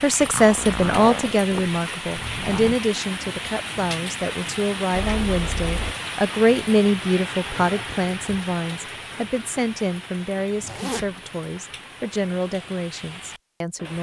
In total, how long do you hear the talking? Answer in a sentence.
The talking can be heard for 14 seconds in total.